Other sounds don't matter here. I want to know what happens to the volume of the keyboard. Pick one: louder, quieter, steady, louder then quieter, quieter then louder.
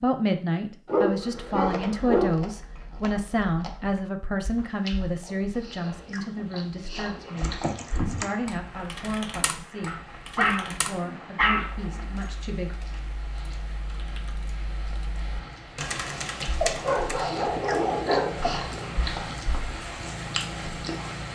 quieter then louder.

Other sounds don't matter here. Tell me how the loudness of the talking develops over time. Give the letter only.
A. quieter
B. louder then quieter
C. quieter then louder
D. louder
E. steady
A.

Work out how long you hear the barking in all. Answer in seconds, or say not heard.
6 s.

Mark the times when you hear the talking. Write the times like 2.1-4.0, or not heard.
0.0-12.8.